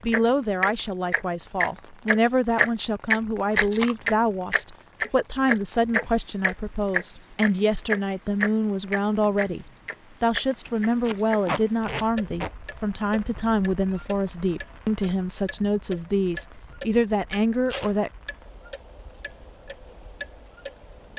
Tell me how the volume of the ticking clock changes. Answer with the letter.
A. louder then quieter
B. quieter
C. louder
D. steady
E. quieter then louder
B.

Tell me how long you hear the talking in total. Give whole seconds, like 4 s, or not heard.
18 s.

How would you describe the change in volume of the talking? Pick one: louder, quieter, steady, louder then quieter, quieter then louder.
steady.